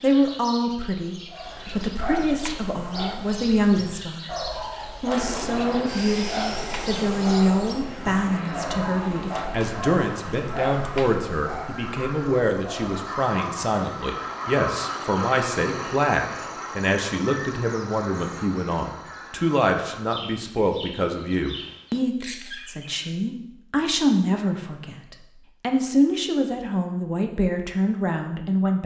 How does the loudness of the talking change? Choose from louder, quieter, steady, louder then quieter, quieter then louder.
steady.